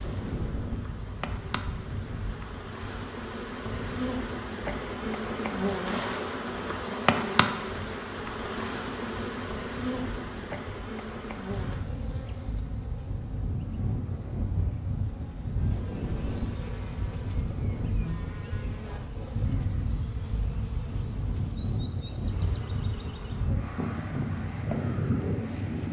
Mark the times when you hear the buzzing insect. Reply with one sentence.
The buzzing insect can be heard from 0.0 to 25.8 s.